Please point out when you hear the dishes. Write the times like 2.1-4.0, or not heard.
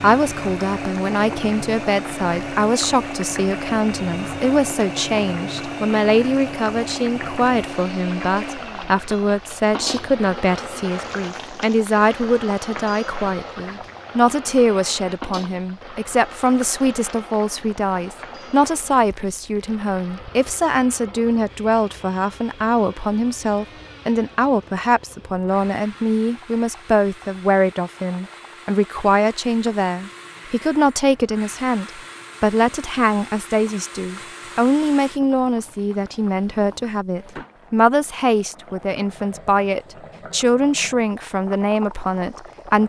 not heard.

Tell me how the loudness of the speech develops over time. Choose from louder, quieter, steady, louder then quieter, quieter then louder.
steady.